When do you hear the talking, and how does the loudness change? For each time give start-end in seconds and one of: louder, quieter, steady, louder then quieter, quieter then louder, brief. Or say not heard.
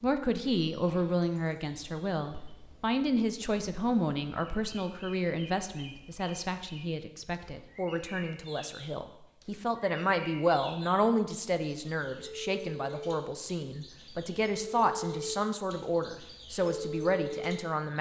0.0-17.9 steady.